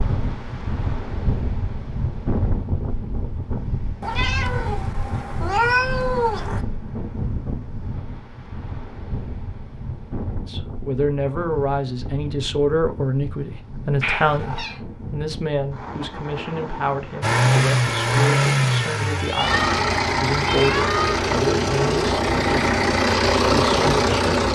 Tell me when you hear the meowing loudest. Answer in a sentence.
The loudest moment of the meowing is at 6 seconds.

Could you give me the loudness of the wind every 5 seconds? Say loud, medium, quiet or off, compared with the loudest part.
loud, loud, medium, medium, off.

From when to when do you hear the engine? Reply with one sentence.
You can hear the engine from 17.2 to 24.5 s.